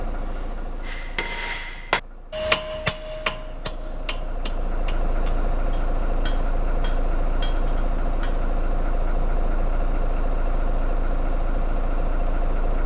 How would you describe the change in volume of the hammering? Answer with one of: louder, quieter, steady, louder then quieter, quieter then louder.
quieter.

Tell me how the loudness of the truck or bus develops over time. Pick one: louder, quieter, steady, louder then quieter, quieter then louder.
louder.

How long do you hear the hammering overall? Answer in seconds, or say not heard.
8 s.